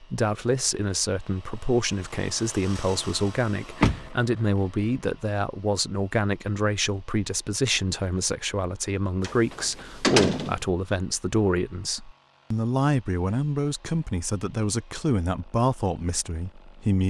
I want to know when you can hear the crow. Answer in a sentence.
The crow can't be heard in this clip.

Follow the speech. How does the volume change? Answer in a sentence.
The loudness of the speech stays about the same.